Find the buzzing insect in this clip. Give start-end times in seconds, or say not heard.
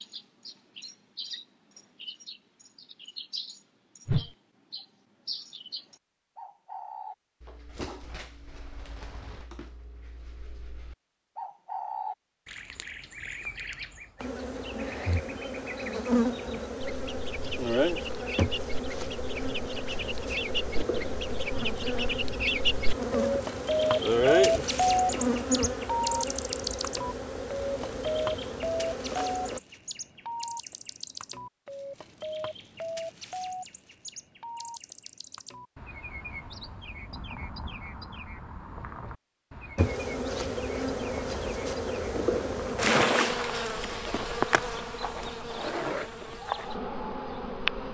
14.2-29.6, 39.8-47.8.